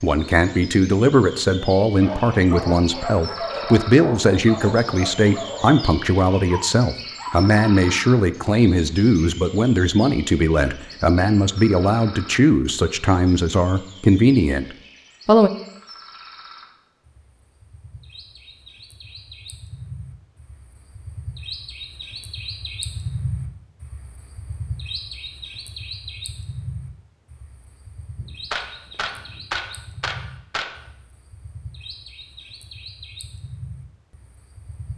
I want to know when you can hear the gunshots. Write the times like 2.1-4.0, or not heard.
28.2-30.8.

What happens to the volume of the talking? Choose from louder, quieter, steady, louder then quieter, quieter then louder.
steady.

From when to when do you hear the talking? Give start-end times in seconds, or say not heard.
0.0-15.5.